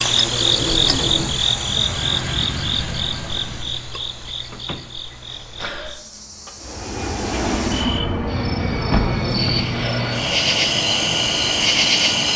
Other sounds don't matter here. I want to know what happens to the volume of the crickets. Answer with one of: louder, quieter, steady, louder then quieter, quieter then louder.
quieter then louder.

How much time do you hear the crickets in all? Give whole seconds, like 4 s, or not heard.
12 s.